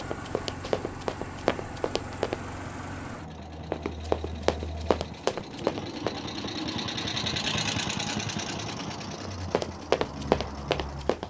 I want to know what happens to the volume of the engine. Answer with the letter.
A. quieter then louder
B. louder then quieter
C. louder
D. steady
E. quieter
B.